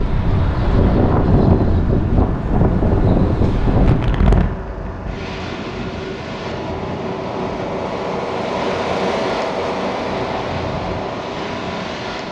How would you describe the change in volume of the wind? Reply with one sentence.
The volume of the wind goes down.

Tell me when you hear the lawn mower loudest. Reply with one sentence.
The volume of the lawn mower peaks at 9 seconds.